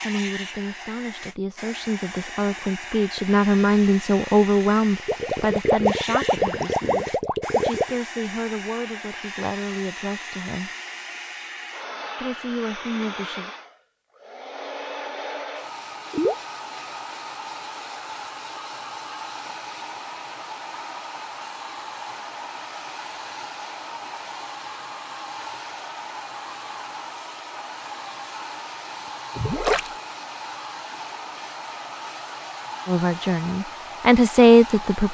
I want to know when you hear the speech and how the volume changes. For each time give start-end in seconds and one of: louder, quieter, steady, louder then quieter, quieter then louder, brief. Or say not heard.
0.0-10.7 louder then quieter
12.2-13.5 brief
32.9-35.0 brief.